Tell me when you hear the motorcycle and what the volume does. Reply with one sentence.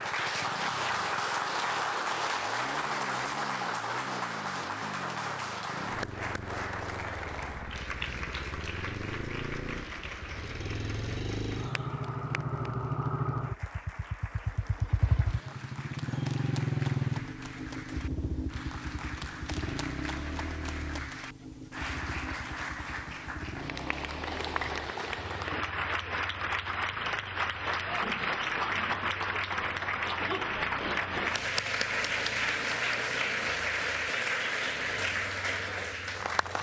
The motorcycle can be heard from 0.0 to 36.5 s, getting louder then quieter.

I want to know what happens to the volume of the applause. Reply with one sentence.
The volume of the applause goes down, then up.